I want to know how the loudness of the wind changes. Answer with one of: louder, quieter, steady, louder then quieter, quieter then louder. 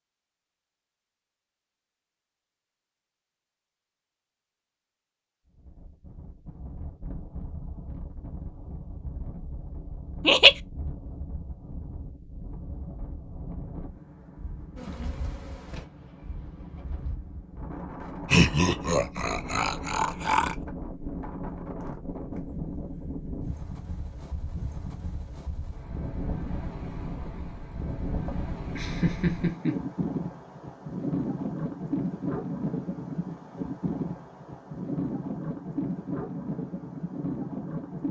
louder.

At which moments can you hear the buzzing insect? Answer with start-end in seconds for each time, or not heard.
14.8-17.1.